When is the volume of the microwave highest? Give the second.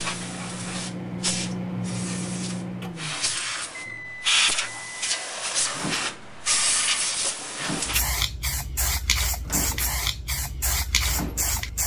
2 s.